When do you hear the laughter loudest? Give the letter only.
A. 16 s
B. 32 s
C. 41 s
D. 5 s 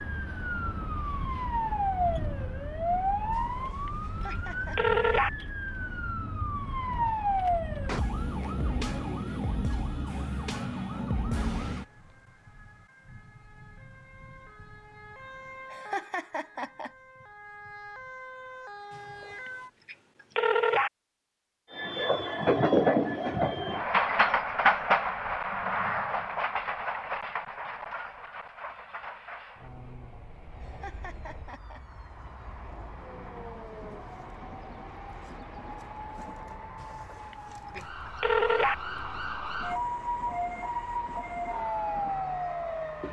A.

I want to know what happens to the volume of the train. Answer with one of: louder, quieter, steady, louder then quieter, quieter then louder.
quieter.